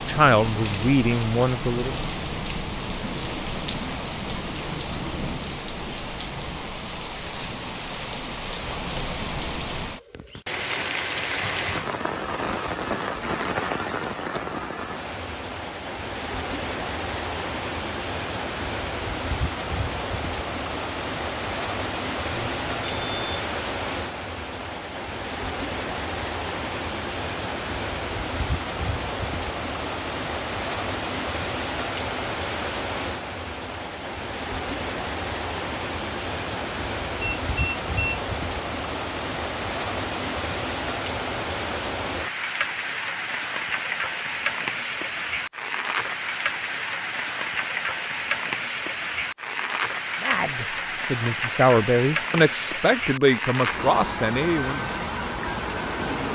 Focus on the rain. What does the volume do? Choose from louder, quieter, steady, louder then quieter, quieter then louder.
steady.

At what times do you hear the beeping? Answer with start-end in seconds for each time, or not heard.
22.3-23.4, 37.2-38.2.